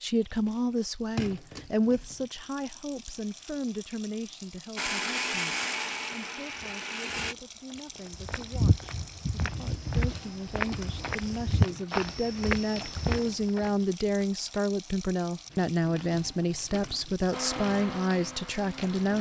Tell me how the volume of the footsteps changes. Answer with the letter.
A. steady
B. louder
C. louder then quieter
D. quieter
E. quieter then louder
B.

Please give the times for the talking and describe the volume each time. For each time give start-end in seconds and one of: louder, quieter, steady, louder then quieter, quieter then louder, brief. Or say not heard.
0.0-19.1 quieter then louder.